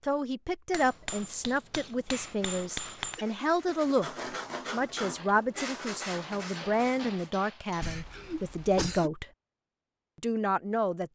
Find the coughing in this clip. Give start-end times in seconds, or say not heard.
3.1-3.9, 7.8-9.1.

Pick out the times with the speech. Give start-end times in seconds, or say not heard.
0.1-4.1, 4.7-9.2, 10.2-11.1.